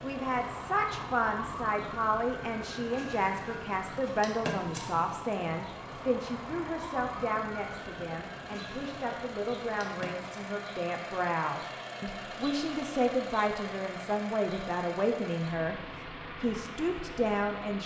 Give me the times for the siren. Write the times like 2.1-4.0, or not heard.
0.0-10.6.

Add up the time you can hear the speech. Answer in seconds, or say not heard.
18 s.